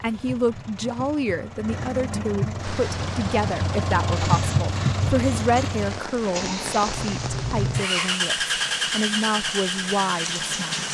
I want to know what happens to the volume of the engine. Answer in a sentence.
The volume of the engine goes up.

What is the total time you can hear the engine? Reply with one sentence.
You can hear the engine for 11 seconds altogether.